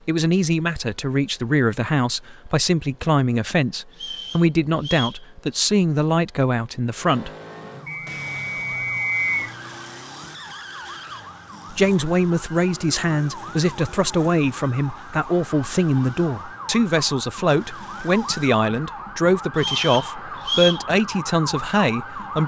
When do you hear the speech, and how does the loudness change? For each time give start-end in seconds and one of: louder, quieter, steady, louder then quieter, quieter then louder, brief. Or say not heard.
0.1-7.3 steady
11.7-22.4 steady.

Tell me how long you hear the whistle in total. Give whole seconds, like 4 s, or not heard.
4 s.